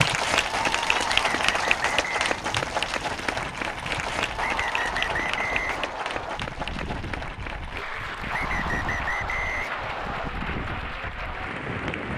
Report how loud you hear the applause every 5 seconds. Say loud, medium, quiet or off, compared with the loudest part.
loud, medium, medium.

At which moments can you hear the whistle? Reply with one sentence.
You can hear the whistle from 1.1 to 2.3 s, from 4.3 to 6.4 s and from 8.3 to 10.3 s.